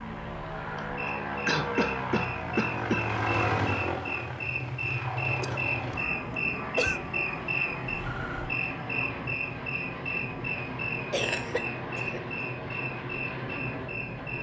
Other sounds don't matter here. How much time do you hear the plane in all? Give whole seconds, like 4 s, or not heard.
14 s.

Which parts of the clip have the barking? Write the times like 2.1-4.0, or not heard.
not heard.